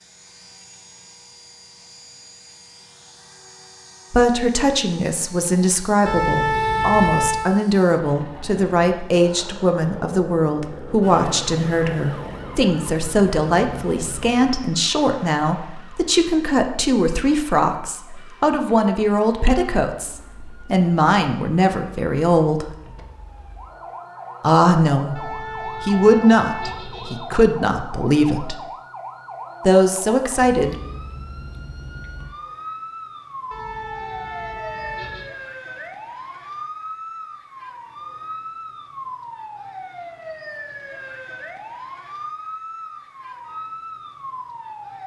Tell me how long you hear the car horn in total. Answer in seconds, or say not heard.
5 s.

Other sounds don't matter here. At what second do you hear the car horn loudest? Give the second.
7 s.